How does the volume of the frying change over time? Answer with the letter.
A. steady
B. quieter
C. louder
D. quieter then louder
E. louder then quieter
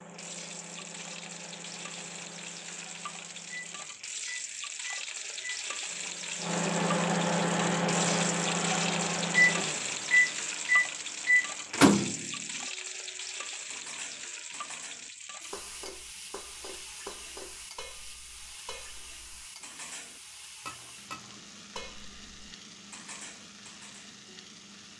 E.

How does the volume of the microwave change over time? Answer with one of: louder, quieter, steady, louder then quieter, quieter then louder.
louder.